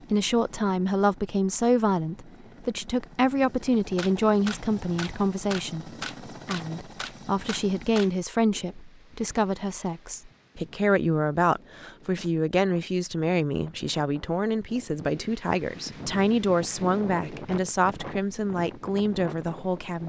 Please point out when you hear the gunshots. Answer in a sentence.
The gunshots can be heard from 3.8 to 8.1 s.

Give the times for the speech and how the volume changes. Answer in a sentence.
You can hear the speech from 0.1 to 20.0 s, at a steady volume.